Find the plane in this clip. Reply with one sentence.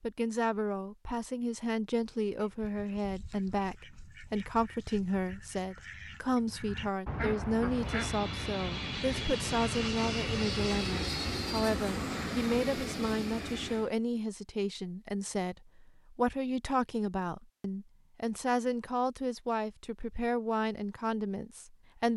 The plane can be heard from 7.5 to 13.9 s.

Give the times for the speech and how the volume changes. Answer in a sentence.
The speech can be heard from 0.0 to 22.1 s, at a steady volume.